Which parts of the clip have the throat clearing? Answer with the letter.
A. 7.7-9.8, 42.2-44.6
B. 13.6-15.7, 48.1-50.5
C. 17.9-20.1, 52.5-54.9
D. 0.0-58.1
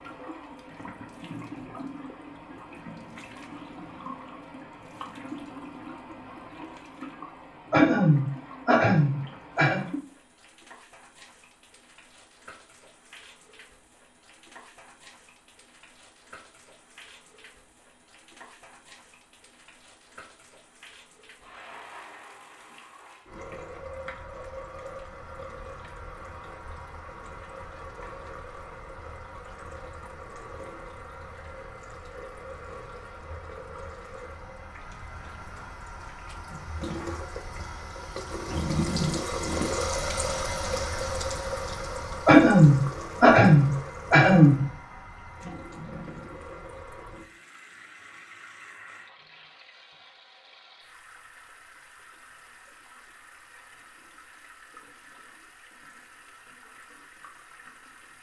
A.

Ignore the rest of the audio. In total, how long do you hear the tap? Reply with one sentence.
You can hear the tap for 58 seconds altogether.